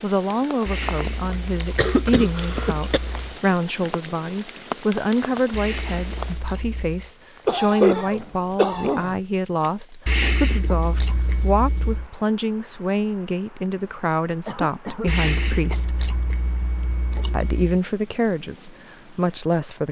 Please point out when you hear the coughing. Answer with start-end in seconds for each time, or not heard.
1.8-3.0, 7.5-9.2, 14.4-15.2.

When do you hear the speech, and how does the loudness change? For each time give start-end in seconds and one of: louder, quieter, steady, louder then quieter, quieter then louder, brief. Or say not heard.
0.0-16.1 steady
17.3-19.8 brief.